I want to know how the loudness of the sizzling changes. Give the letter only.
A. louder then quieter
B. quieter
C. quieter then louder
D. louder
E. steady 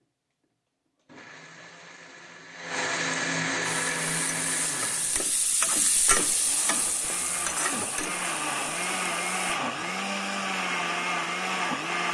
A.